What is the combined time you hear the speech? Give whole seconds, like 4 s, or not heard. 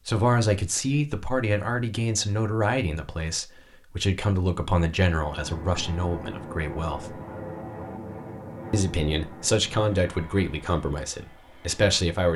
11 s.